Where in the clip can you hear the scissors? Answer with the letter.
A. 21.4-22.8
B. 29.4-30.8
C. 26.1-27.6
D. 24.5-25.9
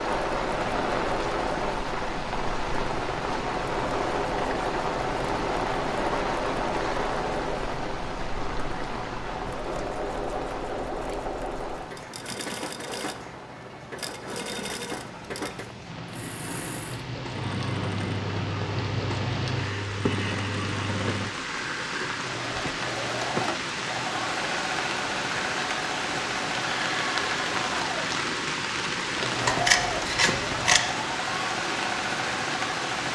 B.